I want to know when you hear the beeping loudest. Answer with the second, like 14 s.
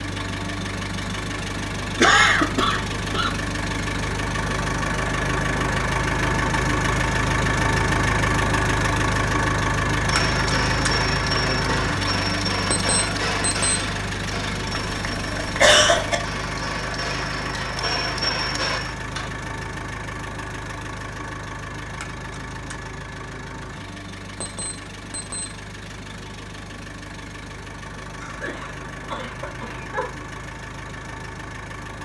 13 s.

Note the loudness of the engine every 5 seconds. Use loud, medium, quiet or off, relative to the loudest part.
medium, loud, loud, medium, quiet, quiet, quiet.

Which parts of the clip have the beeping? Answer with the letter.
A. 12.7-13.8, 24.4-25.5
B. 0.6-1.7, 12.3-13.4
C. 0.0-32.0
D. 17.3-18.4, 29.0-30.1
A.